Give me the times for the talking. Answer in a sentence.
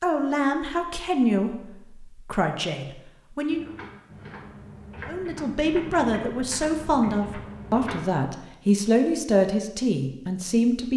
The talking can be heard from 0.0 to 3.6 s and from 5.0 to 10.9 s.